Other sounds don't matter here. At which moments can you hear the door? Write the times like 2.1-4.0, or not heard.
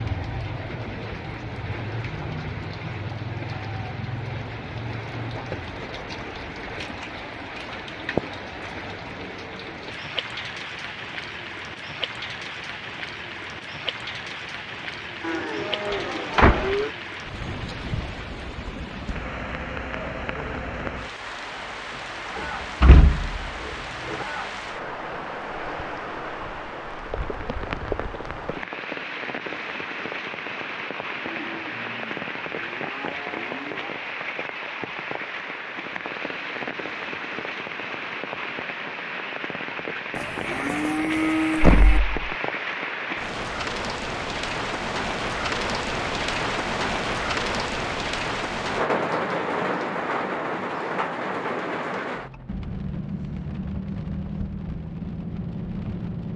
15.9-16.8, 22.4-24.2, 41.5-42.2.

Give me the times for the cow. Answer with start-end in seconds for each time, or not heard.
15.2-16.9, 31.2-34.0, 40.1-42.0.